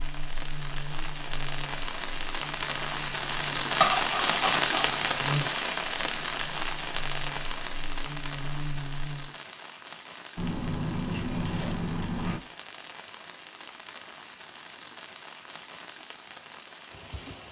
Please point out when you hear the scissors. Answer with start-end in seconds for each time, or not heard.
3.8-4.8, 10.3-12.4.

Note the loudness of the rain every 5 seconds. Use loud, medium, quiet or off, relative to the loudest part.
loud, loud, quiet, quiet.